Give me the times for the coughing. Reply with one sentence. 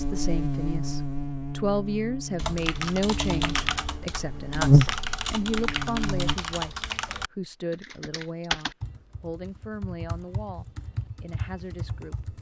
The coughing can't be heard in this clip.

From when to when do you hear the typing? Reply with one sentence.
The typing can be heard from 2.4 to 12.3 s.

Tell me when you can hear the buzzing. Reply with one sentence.
You can hear the buzzing from 0.0 to 6.3 s.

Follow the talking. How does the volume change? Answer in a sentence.
The volume of the talking goes down.